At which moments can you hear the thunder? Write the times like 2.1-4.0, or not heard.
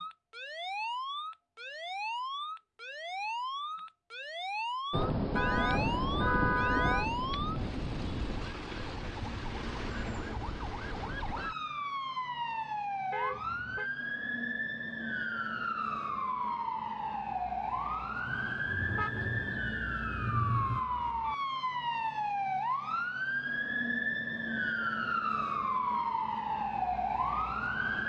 4.9-8.6, 18.2-20.8.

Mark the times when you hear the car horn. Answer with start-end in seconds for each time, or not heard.
5.3-7.0, 13.1-13.9, 18.9-19.7.